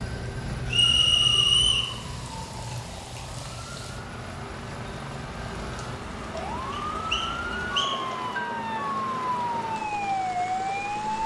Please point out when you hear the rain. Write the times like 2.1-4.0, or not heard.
1.8-11.2.